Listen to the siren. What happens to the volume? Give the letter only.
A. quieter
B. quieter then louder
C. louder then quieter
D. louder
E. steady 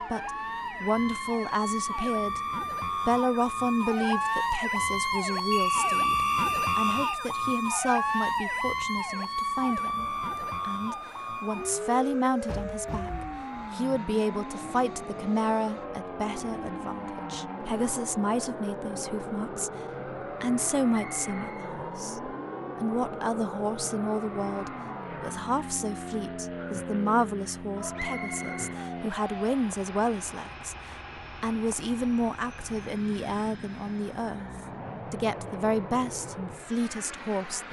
A.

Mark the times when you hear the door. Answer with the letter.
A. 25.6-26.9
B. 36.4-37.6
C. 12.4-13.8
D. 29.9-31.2
C.